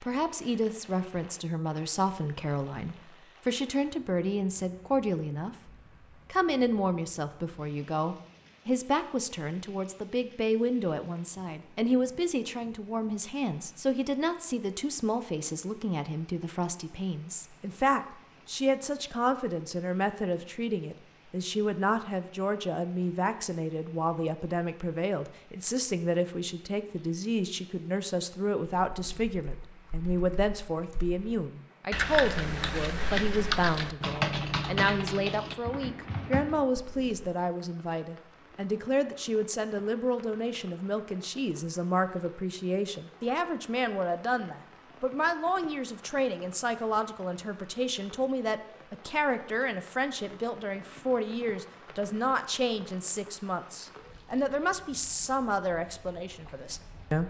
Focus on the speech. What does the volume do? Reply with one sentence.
The volume of the speech stays about the same.